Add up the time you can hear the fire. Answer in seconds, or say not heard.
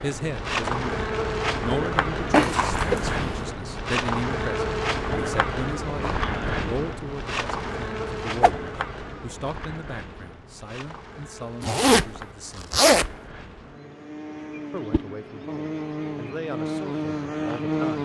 not heard.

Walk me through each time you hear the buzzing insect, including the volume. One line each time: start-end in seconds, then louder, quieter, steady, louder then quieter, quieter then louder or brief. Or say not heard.
0.0-18.0 quieter then louder.